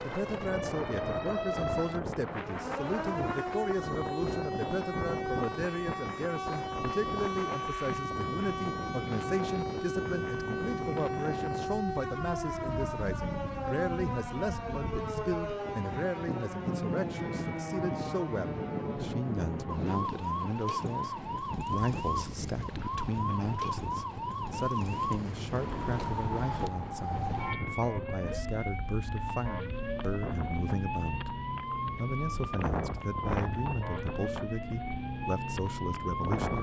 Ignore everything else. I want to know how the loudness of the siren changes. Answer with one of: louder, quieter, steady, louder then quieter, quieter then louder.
steady.